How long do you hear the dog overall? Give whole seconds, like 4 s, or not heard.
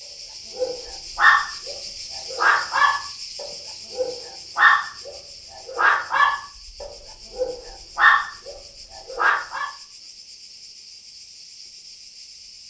9 s.